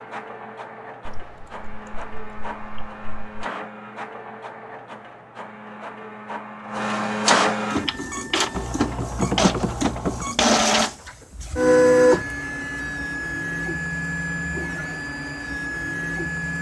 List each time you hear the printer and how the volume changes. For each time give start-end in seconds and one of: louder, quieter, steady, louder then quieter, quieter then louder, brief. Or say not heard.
0.0-16.5 louder then quieter.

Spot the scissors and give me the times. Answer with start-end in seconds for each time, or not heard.
not heard.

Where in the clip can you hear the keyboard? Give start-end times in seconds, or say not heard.
1.1-3.3, 8.6-10.2.